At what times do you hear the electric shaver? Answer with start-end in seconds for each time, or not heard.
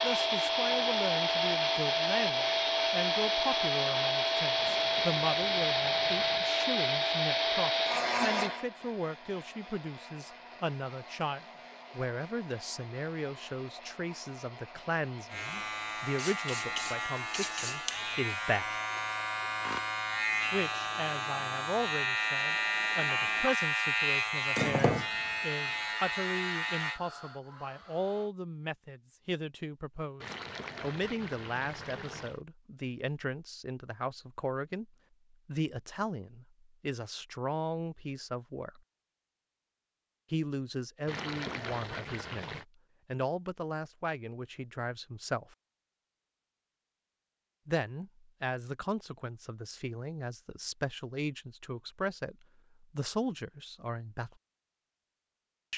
15.3-27.0.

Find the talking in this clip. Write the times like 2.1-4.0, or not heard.
0.0-18.7, 20.5-38.8, 40.3-45.5, 47.6-54.3.